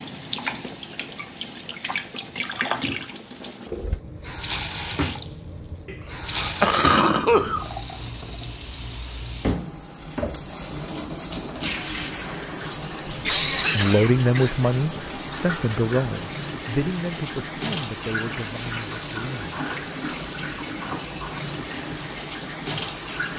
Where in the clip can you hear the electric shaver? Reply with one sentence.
You can't hear the electric shaver here.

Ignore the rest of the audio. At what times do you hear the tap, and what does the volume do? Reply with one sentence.
You can hear the tap from 0.0 to 23.3 s, at a steady volume.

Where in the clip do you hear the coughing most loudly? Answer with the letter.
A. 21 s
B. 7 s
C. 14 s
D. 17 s
B.